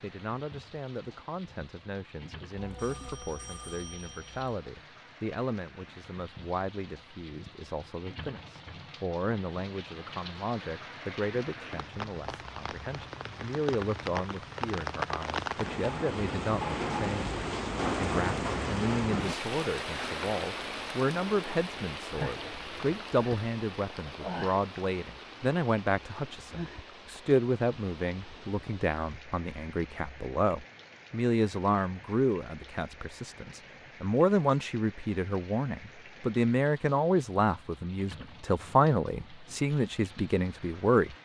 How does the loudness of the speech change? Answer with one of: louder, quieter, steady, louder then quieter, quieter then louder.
louder.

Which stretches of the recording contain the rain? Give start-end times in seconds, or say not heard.
0.0-41.2.